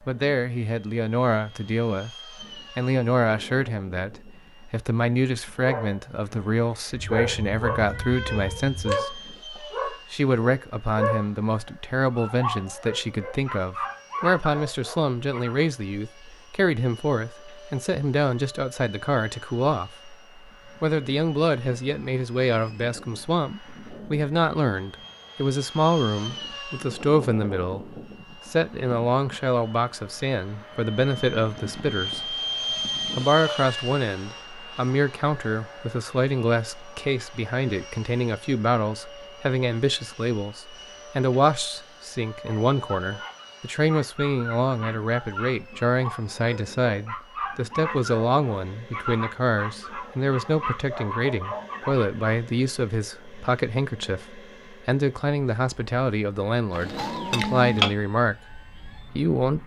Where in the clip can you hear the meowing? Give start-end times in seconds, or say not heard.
6.9-8.9, 56.7-57.9.